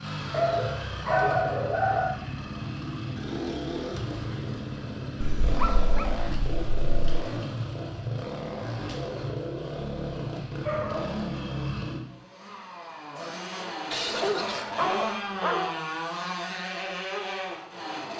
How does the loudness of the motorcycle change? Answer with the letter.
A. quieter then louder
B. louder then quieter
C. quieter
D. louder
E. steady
E.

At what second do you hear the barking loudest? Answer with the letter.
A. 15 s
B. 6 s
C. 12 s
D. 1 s
D.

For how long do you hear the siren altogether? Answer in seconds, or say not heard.
not heard.